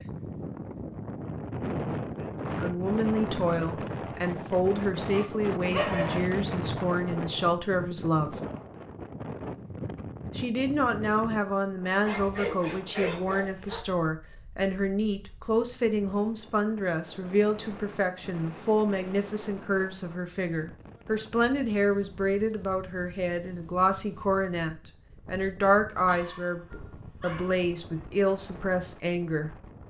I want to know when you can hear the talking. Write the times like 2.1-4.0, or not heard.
2.5-8.4, 10.3-29.5.